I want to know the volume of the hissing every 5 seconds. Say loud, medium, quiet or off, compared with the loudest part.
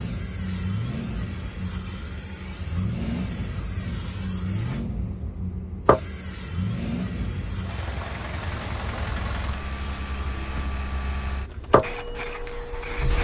medium, loud, loud.